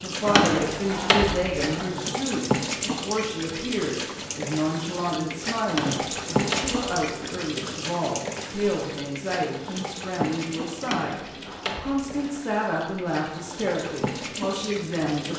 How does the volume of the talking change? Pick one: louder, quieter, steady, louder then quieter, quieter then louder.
steady.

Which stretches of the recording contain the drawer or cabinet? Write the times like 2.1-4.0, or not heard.
0.2-1.9, 5.7-7.2, 10.8-12.4.